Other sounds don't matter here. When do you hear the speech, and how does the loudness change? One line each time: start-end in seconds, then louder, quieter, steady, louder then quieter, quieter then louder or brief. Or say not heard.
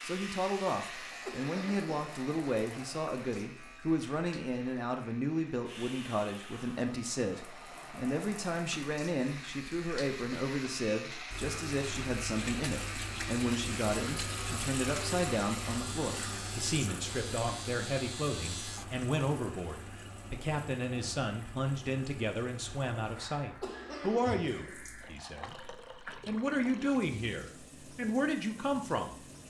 0.0-29.2 steady.